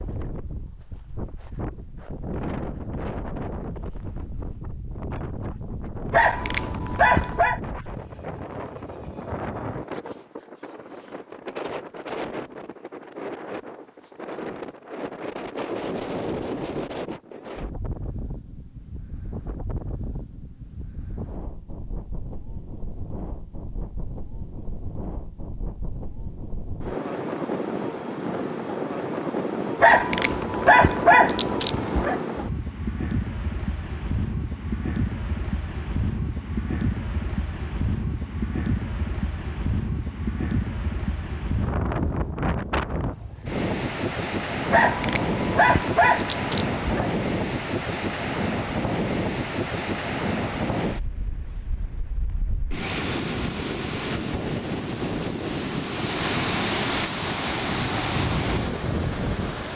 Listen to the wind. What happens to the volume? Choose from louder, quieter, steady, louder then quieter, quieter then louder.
louder.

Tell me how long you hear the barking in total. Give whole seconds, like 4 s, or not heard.
6 s.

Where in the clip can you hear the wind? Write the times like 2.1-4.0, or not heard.
0.0-59.7.